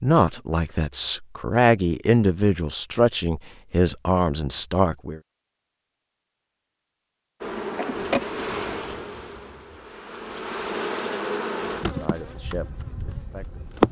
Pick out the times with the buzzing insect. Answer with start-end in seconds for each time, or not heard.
7.4-13.8.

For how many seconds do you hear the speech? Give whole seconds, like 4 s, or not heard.
7 s.